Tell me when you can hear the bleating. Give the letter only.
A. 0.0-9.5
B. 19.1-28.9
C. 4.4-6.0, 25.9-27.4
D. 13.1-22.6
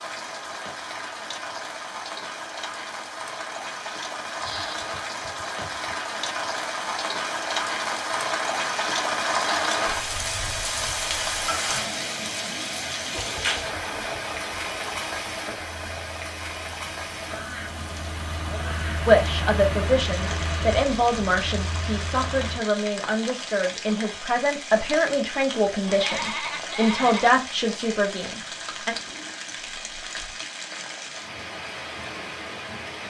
C.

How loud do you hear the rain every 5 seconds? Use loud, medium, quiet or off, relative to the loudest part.
medium, loud, loud, medium, medium, medium, medium.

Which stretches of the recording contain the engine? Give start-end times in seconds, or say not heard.
13.1-22.6.